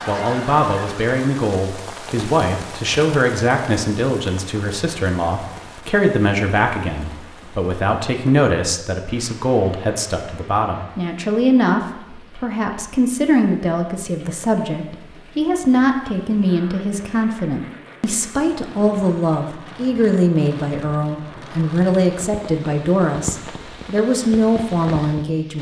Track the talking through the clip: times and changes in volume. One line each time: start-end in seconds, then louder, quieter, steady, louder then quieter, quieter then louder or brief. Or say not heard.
0.1-25.5 steady.